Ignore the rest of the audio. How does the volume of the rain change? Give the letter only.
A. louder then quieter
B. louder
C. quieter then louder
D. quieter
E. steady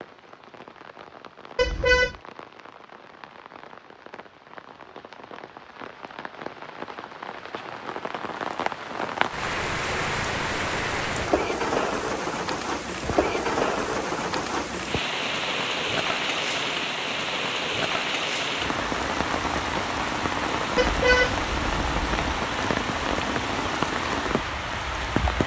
B.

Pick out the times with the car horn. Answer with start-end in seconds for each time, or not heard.
1.6-2.1, 20.8-22.4.